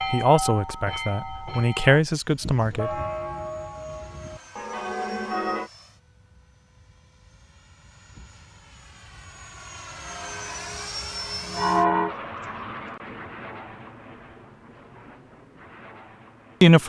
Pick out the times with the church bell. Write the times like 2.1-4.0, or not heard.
0.0-5.7, 10.0-12.2.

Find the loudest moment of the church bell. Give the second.
12 s.